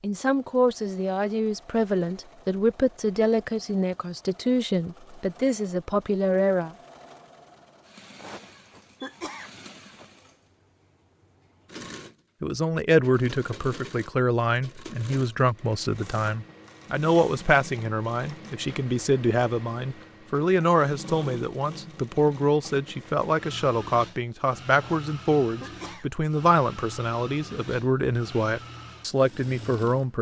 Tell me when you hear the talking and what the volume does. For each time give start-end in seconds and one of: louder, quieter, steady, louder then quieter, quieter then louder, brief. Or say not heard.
0.0-6.7 steady
12.4-30.1 steady.